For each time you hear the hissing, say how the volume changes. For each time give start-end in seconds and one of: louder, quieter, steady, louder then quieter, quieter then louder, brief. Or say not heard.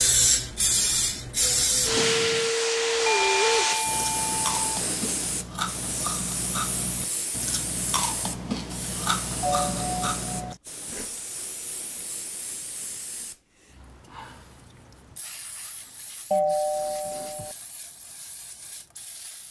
0.0-19.4 quieter.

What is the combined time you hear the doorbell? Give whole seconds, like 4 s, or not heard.
4 s.